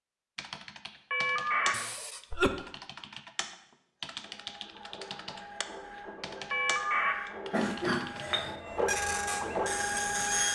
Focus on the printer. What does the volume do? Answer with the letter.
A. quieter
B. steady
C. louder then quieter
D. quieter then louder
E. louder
E.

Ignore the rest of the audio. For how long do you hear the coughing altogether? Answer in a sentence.
You can hear the coughing for 2 seconds altogether.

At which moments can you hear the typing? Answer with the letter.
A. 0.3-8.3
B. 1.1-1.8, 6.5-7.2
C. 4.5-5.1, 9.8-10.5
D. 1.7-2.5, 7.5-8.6
A.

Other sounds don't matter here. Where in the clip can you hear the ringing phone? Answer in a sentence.
The ringing phone can be heard from 1.1 to 1.8 s and from 6.5 to 7.2 s.